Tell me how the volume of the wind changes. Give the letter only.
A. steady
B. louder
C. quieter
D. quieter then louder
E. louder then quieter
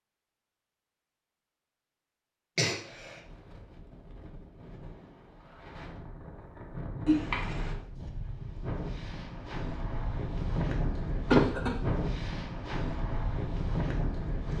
B.